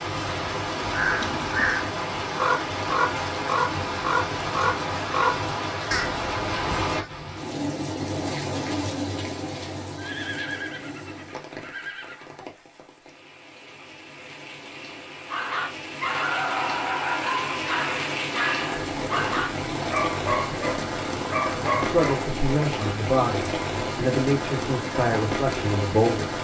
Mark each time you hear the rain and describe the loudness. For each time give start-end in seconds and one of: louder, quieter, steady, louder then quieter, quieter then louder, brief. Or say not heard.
0.0-26.3 quieter then louder.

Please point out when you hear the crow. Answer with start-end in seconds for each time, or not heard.
0.9-7.1.